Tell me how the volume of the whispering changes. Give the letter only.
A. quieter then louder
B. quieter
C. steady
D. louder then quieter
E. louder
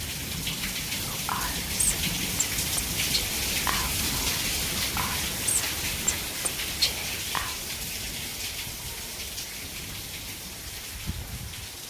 A.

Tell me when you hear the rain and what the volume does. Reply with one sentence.
The rain can be heard from 0.0 to 11.8 s, getting quieter.